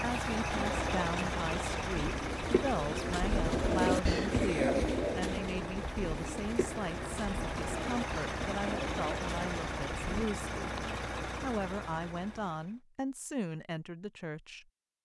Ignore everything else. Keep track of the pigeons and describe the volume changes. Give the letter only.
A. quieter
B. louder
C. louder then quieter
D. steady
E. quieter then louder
C.